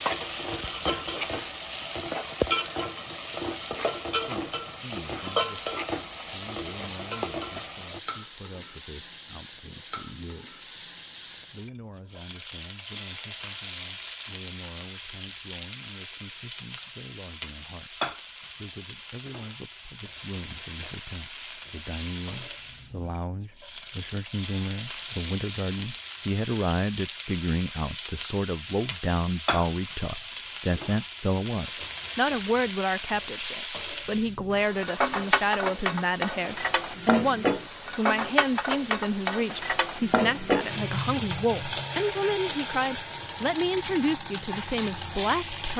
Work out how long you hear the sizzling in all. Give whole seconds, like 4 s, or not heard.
46 s.